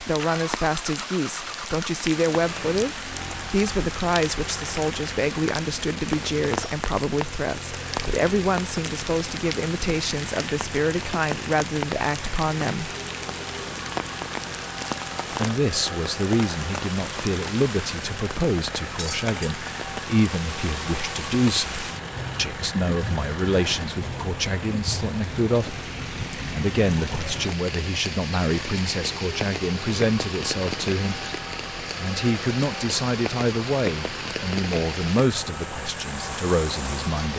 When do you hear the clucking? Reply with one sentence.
You can't hear the clucking here.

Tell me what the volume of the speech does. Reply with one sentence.
The volume of the speech stays about the same.